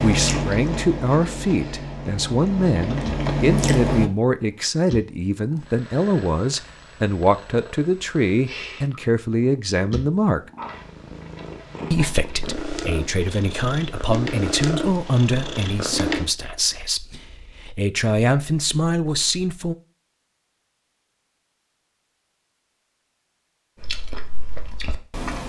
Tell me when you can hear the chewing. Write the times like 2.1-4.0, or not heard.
0.0-4.1, 23.8-25.4.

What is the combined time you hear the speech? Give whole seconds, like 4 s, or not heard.
18 s.